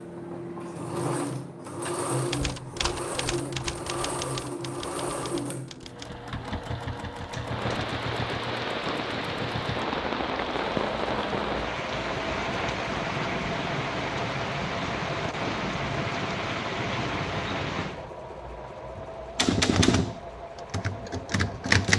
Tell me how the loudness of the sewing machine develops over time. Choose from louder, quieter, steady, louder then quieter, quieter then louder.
quieter.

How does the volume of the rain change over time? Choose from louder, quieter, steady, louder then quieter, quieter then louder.
quieter.